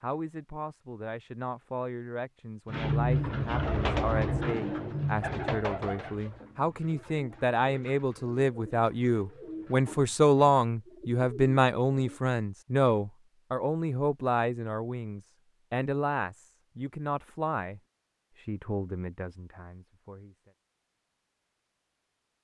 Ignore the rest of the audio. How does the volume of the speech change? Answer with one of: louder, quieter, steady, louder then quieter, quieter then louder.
louder then quieter.